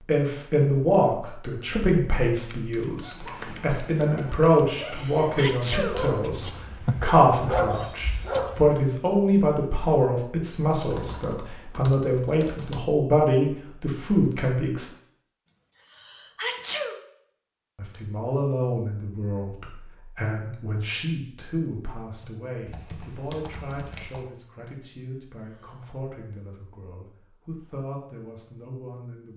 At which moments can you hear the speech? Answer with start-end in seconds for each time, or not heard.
0.1-14.9, 17.8-29.3.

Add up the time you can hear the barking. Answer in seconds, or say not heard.
6 s.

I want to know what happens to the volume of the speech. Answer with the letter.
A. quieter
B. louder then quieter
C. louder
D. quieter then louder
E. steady
A.